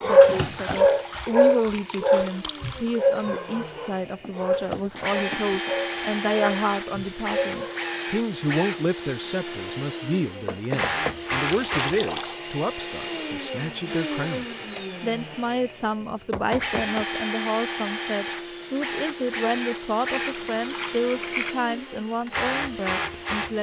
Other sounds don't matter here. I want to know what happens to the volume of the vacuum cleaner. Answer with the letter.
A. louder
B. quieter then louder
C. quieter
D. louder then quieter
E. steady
A.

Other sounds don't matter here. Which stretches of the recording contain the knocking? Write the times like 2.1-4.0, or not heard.
4.0-5.8, 10.4-11.2, 16.0-17.1.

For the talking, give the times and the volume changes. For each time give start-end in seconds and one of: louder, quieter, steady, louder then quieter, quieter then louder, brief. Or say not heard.
0.0-23.5 steady.